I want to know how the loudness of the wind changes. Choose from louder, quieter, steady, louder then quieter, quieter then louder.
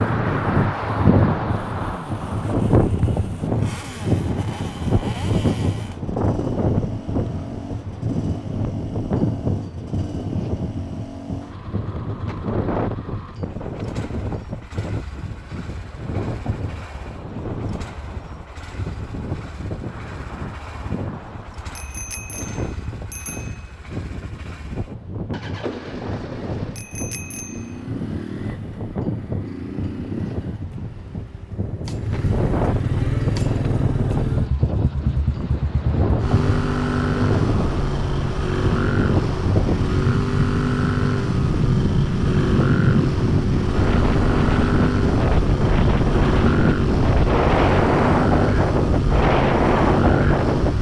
quieter then louder.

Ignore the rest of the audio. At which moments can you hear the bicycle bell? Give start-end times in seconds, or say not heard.
21.8-23.8, 26.8-27.9.